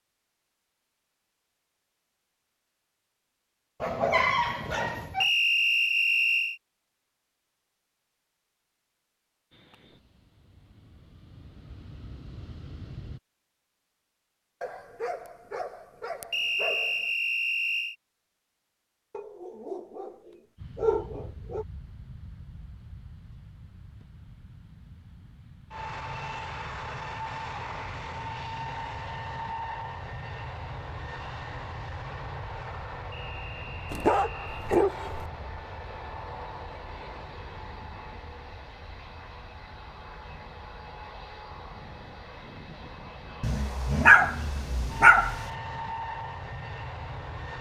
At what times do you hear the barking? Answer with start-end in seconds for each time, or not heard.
3.8-5.3, 14.6-16.9, 19.1-20.1, 20.8-21.6, 33.9-35.2, 43.4-45.4.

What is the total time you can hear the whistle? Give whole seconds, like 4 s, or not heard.
5 s.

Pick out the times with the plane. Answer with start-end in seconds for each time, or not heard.
9.5-13.2, 20.6-47.5.